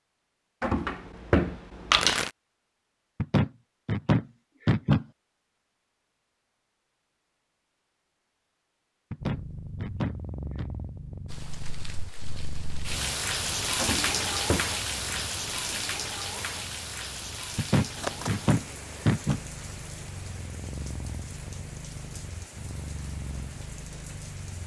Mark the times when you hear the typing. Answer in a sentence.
You can't hear the typing here.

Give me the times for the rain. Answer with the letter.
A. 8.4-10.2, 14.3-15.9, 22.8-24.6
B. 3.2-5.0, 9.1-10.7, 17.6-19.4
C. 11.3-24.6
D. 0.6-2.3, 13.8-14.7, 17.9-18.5
C.